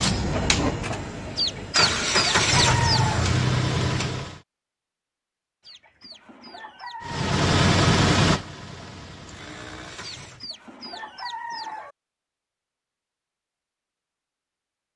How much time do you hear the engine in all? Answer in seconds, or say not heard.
8 s.